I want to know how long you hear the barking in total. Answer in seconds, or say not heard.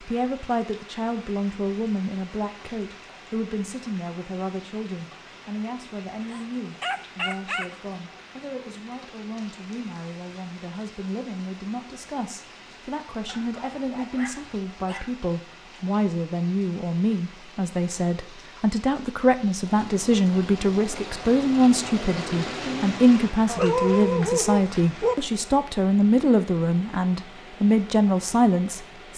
5 s.